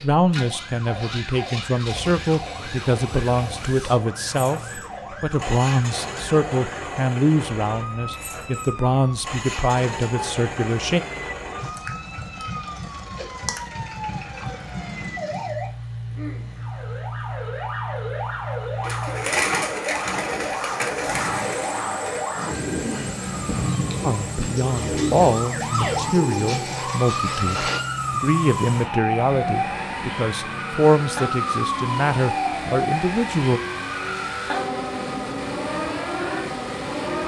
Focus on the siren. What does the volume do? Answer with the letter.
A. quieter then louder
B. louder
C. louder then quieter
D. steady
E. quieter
B.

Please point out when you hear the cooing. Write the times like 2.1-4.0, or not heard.
18.8-27.8.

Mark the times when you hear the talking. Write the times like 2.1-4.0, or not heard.
0.0-11.0, 24.0-33.6.